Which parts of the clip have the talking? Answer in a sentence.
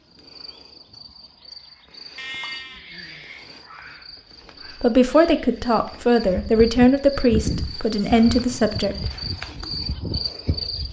The talking can be heard from 4.8 to 8.9 s.